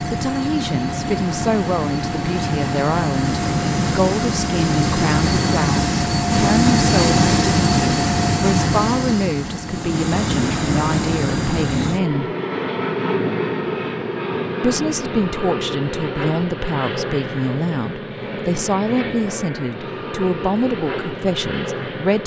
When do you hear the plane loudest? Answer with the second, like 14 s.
7 s.